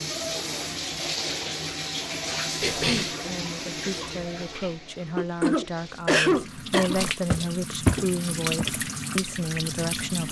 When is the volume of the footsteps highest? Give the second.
8 s.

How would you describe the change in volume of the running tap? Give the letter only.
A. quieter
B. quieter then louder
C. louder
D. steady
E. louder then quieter
B.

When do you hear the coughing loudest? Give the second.
6 s.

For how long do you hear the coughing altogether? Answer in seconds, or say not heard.
2 s.